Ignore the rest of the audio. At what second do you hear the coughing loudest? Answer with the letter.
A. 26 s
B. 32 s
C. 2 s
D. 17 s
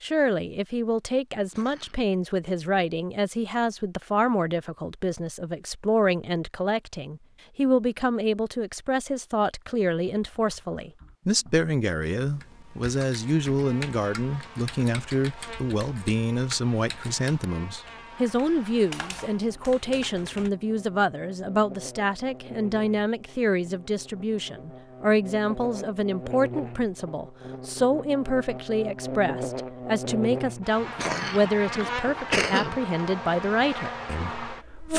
B.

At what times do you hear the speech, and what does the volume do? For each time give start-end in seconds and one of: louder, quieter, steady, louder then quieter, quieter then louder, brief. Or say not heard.
0.0-34.9 steady.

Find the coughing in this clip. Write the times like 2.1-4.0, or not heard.
1.4-1.9, 30.8-32.8.